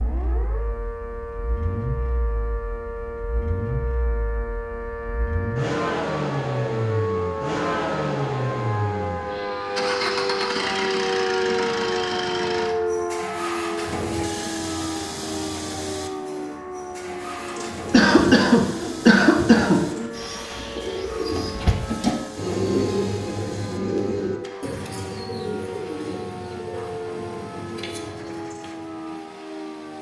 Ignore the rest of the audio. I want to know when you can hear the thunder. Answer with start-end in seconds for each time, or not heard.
not heard.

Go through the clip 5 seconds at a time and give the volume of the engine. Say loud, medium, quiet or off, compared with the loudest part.
medium, loud, loud, medium, quiet, quiet.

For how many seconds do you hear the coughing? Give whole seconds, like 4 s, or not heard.
2 s.